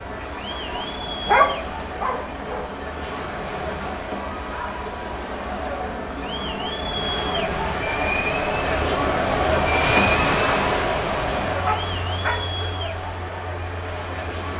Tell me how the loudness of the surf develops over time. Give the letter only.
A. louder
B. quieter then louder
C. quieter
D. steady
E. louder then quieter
E.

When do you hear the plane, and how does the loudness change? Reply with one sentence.
You can hear the plane from 0.0 to 14.5 s, getting louder then quieter.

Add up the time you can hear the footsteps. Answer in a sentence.
The footsteps can't be heard in this clip.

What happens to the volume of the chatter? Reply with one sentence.
The volume of the chatter goes up, then down.